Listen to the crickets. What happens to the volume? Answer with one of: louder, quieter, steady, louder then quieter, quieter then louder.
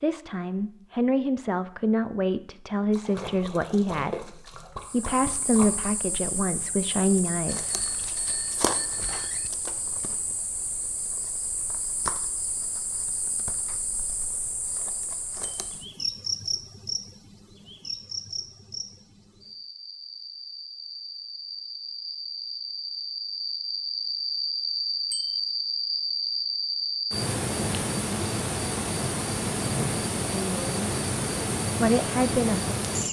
louder.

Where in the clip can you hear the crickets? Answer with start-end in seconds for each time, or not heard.
4.8-33.0.